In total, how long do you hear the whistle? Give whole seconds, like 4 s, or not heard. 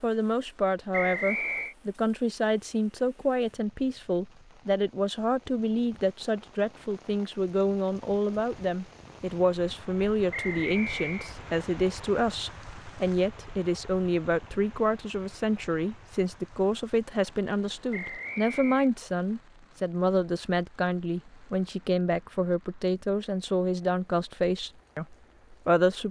3 s.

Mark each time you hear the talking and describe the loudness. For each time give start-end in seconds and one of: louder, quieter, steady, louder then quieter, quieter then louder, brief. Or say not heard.
0.0-26.0 steady.